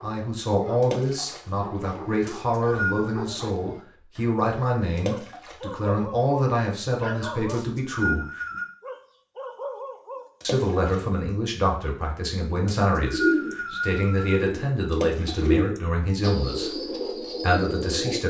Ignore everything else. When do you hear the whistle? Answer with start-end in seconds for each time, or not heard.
2.2-3.1, 7.5-8.7, 12.7-14.4.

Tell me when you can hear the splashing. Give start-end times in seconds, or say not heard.
0.8-1.5, 5.0-5.7, 10.4-11.1, 14.9-15.6.